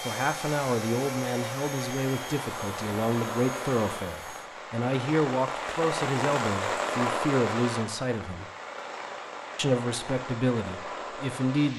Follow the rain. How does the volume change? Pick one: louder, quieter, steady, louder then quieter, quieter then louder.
louder then quieter.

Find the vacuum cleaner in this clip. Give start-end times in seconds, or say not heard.
0.0-4.5.